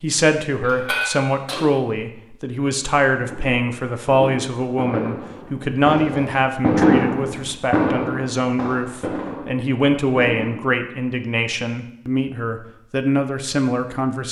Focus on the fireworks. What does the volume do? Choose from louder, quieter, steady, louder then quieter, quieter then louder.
louder then quieter.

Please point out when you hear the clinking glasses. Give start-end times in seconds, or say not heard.
0.6-1.6.